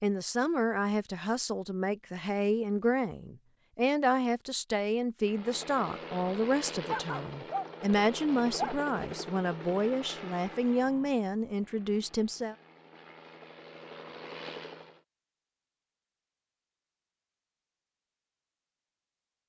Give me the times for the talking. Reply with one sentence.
The talking can be heard from 0.0 to 12.6 s.